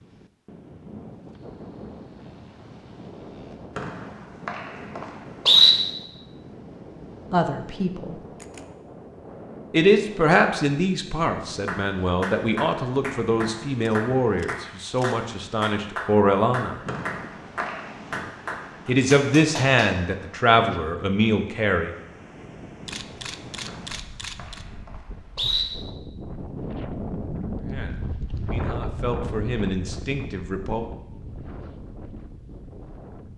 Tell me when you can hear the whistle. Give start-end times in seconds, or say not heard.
3.8-5.7, 16.9-17.8, 23.6-25.6.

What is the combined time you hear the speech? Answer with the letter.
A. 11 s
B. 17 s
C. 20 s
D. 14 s
D.